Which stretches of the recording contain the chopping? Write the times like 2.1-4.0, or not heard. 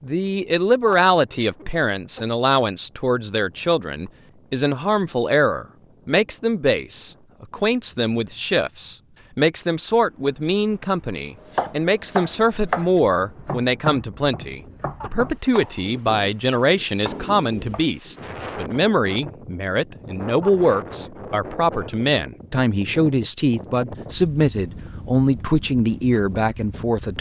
11.4-17.9.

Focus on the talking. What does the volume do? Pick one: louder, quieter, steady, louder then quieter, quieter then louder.
steady.